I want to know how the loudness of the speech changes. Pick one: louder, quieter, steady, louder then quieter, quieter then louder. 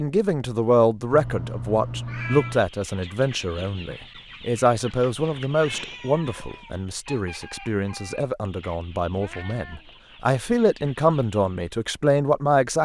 quieter then louder.